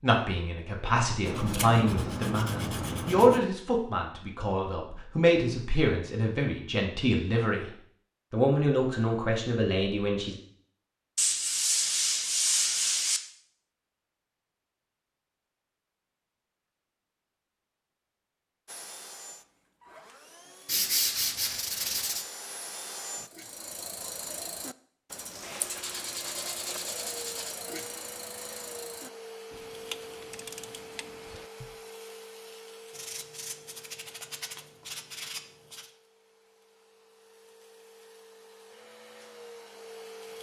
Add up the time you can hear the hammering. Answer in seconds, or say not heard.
not heard.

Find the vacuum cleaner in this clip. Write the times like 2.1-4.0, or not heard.
18.6-23.3, 25.4-40.3.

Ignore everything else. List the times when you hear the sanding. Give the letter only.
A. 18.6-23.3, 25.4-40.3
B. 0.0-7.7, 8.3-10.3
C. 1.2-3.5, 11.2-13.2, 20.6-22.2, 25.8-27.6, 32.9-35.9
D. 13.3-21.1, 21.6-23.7
C.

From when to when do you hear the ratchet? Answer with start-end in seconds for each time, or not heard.
23.2-31.8.